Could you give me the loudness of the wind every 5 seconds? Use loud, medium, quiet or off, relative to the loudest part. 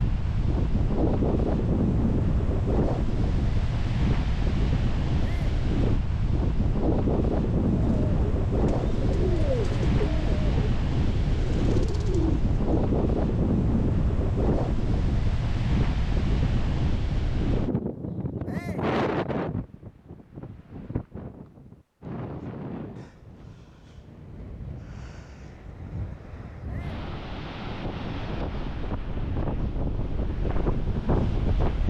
loud, loud, loud, loud, quiet, medium, loud.